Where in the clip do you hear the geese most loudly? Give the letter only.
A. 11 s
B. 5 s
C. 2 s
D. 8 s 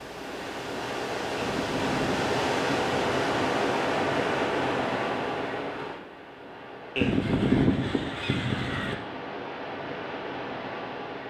D.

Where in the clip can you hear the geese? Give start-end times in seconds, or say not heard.
1.4-3.1, 7.0-8.9.